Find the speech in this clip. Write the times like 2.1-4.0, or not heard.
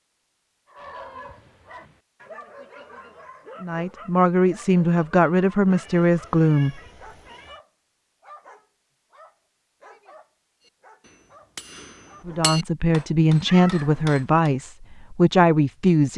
3.6-6.8, 12.2-16.1.